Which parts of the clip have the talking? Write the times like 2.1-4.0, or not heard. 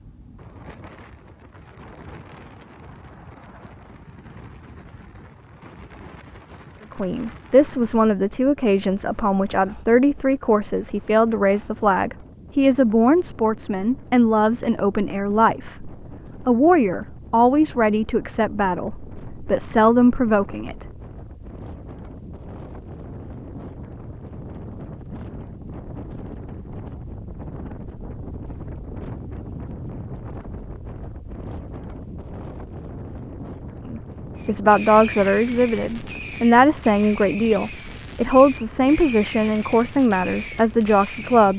7.0-20.9, 33.9-41.5.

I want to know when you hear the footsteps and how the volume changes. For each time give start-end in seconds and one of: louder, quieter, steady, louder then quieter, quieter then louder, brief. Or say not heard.
not heard.